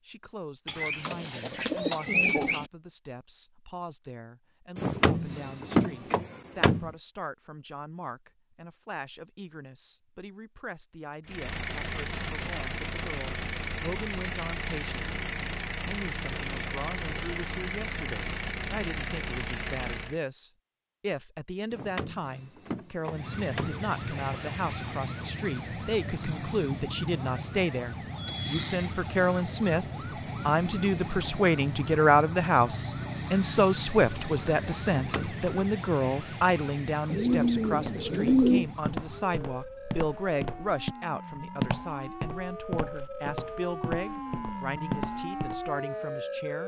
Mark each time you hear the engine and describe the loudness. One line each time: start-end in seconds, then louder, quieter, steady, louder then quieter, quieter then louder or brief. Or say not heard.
11.2-20.2 steady.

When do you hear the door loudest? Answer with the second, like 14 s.
6 s.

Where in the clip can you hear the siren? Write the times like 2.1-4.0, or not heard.
23.1-46.6.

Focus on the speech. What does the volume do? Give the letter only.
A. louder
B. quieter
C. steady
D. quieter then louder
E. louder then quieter
E.